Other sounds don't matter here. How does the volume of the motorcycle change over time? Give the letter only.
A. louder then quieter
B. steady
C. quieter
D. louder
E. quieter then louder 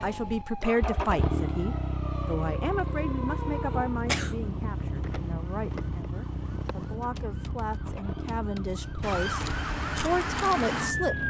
C.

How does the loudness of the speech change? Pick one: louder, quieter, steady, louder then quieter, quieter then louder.
quieter then louder.